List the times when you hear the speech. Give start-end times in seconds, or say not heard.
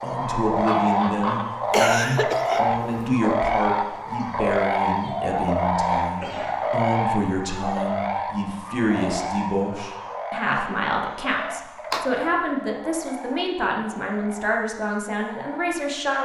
0.0-16.2.